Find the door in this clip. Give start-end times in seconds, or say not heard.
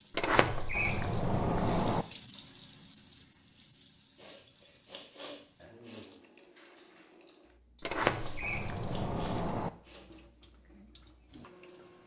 0.1-2.0, 7.8-9.7.